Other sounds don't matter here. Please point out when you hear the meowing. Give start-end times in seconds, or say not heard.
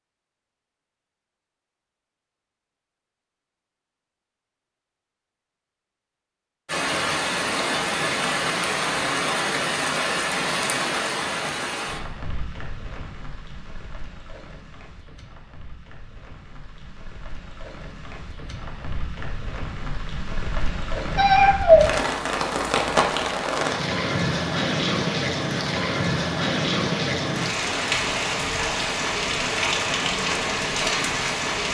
21.1-21.9.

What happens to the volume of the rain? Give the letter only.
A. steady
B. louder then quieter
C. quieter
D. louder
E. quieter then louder
E.